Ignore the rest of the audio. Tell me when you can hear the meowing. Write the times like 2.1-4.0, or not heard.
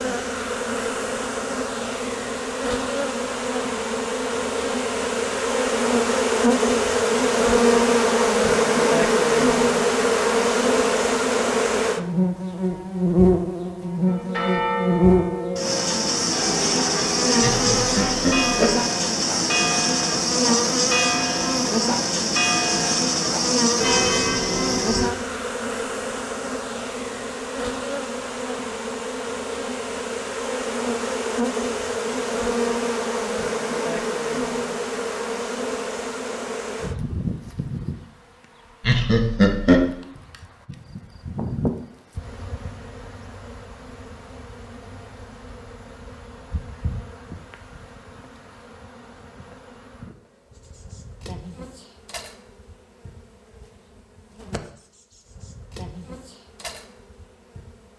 not heard.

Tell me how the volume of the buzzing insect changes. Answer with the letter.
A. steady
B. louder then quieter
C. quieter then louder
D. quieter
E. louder
D.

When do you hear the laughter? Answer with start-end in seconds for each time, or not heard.
17.4-18.8, 38.8-39.9.